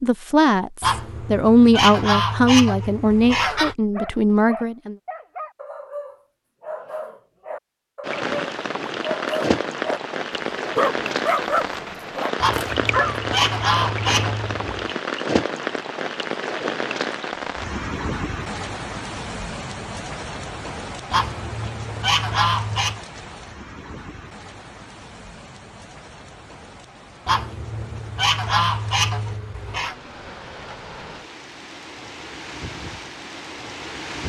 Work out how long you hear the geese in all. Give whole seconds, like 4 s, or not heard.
10 s.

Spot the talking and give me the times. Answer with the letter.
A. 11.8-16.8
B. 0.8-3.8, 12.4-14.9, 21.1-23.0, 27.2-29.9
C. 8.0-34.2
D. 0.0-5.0
D.